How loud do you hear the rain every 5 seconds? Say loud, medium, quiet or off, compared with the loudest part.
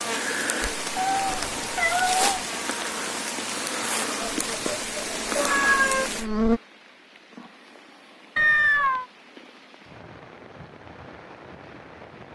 loud, medium, quiet.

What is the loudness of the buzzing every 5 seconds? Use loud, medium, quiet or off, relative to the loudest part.
medium, loud, off.